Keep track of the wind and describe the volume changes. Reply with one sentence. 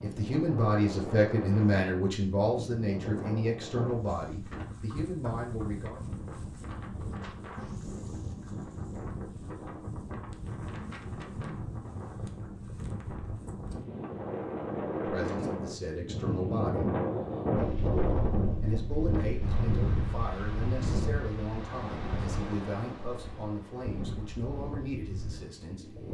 The volume of the wind goes up, then down.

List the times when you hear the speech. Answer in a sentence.
The speech can be heard from 0.0 to 6.0 s, from 14.9 to 16.9 s and from 18.4 to 25.9 s.